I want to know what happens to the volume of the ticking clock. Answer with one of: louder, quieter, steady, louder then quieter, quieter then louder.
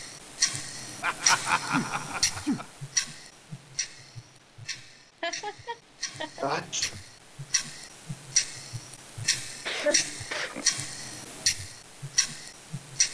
quieter then louder.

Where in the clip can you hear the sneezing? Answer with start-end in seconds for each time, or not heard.
1.6-2.6, 6.4-7.0, 9.7-10.7.